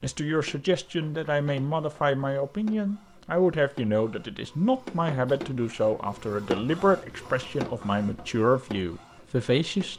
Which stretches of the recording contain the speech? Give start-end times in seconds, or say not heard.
0.0-9.9.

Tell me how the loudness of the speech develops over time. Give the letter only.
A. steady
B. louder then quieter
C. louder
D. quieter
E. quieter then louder
A.